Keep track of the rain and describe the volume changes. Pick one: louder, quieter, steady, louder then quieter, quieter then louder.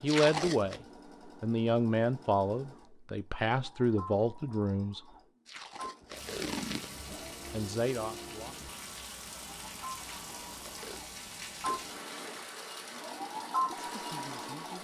steady.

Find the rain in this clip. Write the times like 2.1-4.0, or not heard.
6.1-14.7.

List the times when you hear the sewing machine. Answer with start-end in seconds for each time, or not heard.
0.0-14.7.